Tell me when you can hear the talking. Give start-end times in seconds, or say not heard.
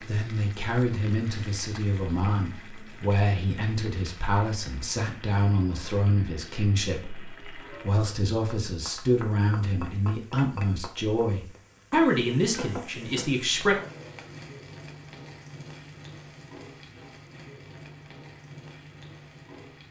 0.0-13.8.